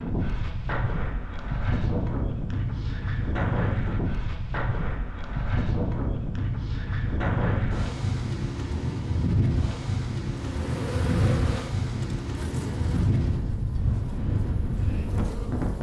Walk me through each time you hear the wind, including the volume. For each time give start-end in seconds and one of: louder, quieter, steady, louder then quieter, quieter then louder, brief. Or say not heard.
0.0-15.7 steady.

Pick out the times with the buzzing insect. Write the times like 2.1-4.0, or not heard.
10.2-15.7.